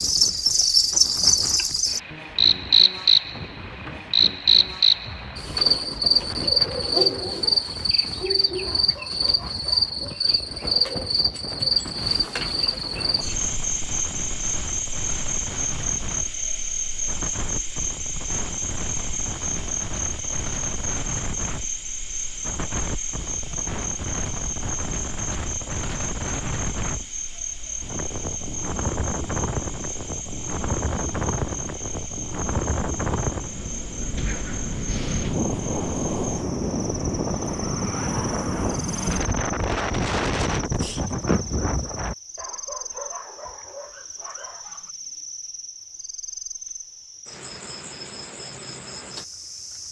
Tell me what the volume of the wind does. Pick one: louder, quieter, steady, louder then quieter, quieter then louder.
louder.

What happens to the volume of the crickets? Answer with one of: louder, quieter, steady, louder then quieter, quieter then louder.
quieter.